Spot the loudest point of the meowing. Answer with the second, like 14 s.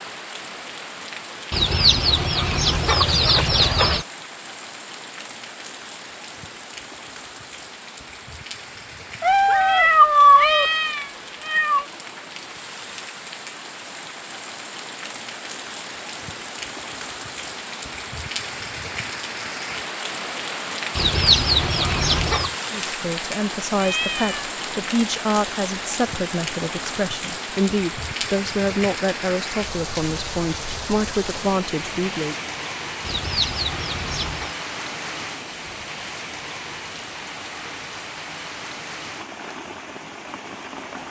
10 s.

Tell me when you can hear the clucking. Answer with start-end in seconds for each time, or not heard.
1.5-4.0, 20.9-22.6, 33.0-34.5.